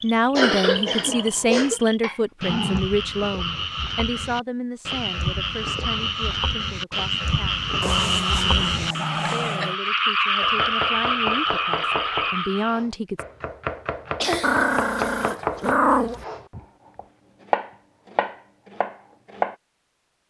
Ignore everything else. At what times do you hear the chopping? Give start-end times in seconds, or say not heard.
10.4-19.6.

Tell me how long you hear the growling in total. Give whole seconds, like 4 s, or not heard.
5 s.